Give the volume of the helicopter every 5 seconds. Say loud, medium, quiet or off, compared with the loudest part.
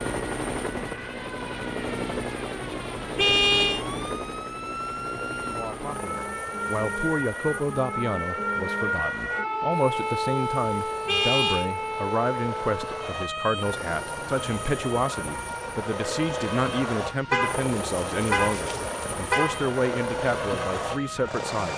loud, medium, medium, loud, loud.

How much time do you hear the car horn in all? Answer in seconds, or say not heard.
4 s.